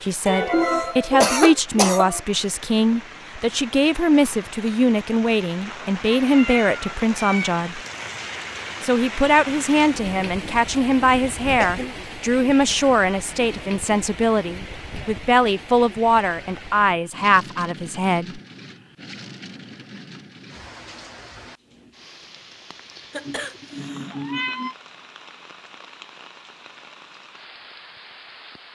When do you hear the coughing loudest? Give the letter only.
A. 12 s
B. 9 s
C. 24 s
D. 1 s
D.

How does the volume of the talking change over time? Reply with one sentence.
The loudness of the talking stays about the same.